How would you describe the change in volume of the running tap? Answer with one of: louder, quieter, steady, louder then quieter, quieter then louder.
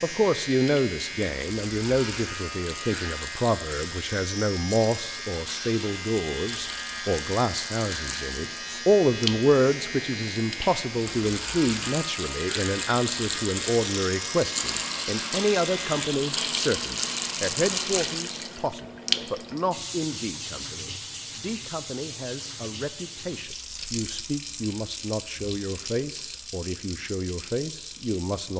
louder then quieter.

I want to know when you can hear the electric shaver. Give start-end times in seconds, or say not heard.
0.0-16.1.